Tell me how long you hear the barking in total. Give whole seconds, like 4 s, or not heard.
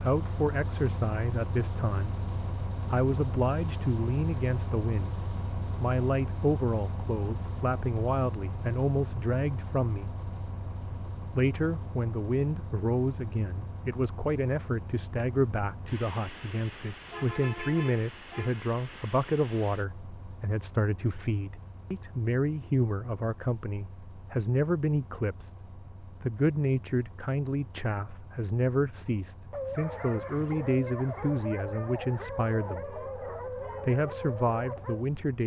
6 s.